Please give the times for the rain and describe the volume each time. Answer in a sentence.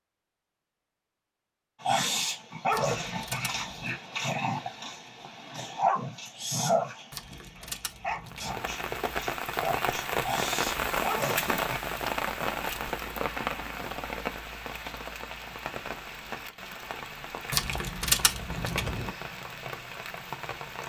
You can hear the rain from 8.2 to 20.8 s, getting quieter.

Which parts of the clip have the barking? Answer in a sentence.
The barking can be heard from 1.8 to 11.8 s.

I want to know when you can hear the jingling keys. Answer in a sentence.
You can hear the jingling keys from 2.7 to 4.0 s, from 7.1 to 8.7 s and from 17.5 to 19.1 s.